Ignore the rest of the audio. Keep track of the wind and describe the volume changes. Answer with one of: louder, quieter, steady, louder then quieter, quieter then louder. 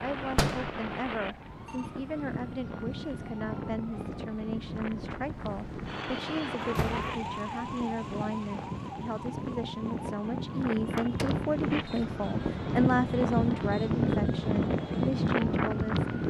louder.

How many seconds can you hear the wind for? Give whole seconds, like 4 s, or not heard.
16 s.